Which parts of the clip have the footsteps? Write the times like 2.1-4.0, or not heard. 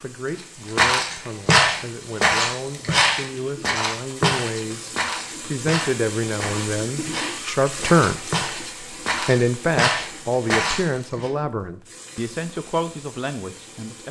0.8-11.3.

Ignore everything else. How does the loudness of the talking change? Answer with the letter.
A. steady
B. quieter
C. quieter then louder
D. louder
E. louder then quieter
E.